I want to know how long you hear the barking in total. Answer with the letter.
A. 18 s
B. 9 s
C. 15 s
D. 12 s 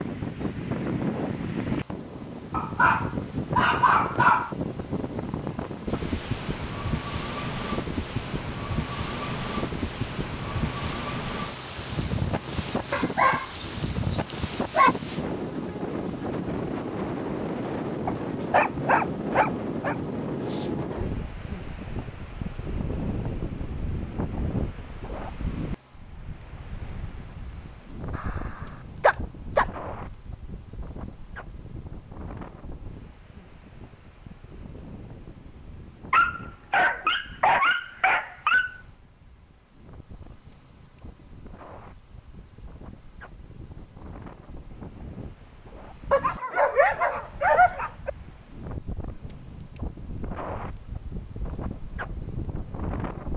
D.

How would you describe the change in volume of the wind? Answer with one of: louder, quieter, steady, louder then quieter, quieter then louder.
quieter then louder.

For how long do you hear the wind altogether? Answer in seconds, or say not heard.
53 s.